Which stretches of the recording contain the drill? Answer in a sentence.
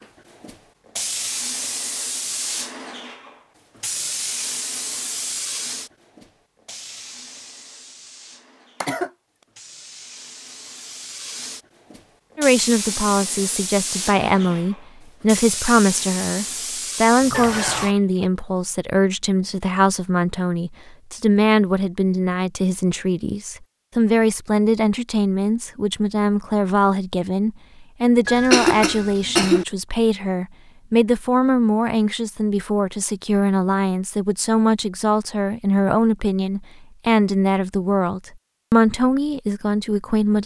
You can't hear the drill here.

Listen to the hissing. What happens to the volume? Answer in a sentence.
The volume of the hissing goes down, then up.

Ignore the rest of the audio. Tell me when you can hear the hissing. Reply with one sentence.
The hissing can be heard from 0.0 to 17.9 s.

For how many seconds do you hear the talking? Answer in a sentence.
You can hear the talking for 28 seconds altogether.